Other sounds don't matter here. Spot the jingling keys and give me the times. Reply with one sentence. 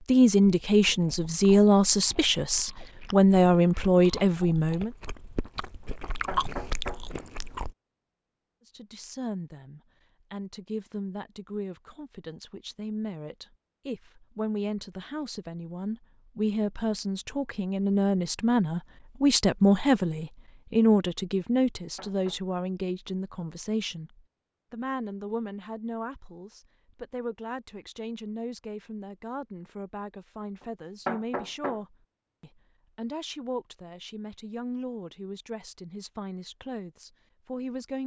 The jingling keys can't be heard in this clip.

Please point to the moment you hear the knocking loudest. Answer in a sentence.
The loudest moment of the knocking is at 31 seconds.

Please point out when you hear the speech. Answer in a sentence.
You can hear the speech from 0.1 to 4.9 s and from 8.7 to 38.0 s.